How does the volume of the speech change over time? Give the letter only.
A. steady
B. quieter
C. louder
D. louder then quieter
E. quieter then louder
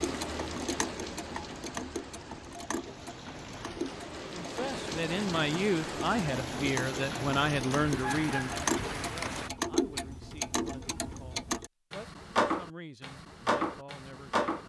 B.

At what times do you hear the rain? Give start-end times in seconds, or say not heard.
0.0-9.5.